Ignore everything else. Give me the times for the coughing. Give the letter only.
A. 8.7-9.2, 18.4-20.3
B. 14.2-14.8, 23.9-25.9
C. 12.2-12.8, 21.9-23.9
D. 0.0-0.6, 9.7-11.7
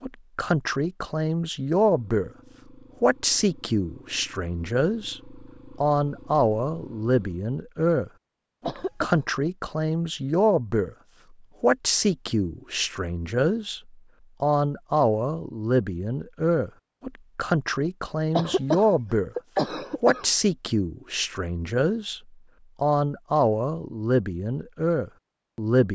A.